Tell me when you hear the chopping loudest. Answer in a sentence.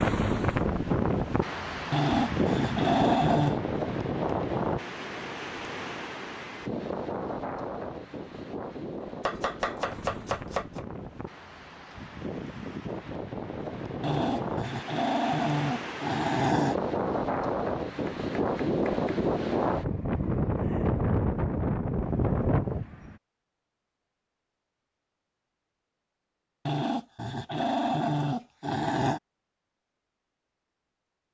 The volume of the chopping peaks at 10 seconds.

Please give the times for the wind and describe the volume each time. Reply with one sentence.
The wind can be heard from 0.0 to 23.1 s, getting quieter then louder.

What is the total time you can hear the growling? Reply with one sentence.
You can hear the growling for 7 seconds altogether.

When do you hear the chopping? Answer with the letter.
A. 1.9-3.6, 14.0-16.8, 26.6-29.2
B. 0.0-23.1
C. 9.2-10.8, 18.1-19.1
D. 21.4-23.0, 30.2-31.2
C.